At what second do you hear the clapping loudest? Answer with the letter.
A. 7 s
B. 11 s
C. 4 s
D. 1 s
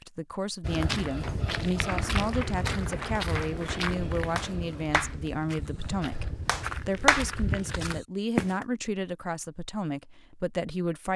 A.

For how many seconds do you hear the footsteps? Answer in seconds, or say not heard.
8 s.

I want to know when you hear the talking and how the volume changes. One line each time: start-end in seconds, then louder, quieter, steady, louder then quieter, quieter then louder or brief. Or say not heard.
0.0-11.1 steady.